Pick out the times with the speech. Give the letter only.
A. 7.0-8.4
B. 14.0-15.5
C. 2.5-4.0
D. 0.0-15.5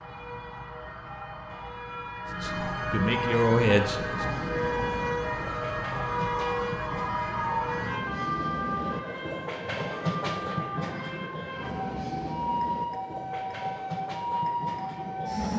C.